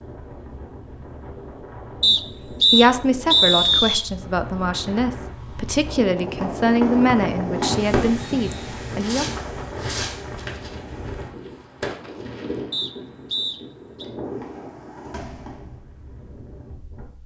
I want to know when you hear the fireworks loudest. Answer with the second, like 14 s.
8 s.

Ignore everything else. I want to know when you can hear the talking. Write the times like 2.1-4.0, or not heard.
2.0-9.2.